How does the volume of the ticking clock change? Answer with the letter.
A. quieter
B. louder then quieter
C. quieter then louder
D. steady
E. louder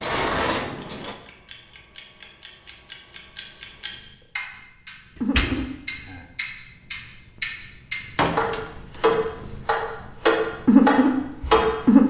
E.